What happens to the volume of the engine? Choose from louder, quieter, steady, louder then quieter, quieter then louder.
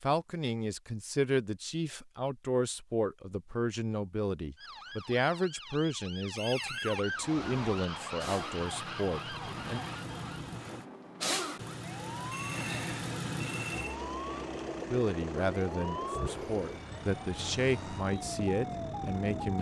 louder then quieter.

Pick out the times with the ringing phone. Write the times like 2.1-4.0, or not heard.
6.3-7.0, 12.3-14.0.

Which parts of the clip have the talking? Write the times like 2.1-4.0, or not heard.
0.0-9.8, 14.9-19.5.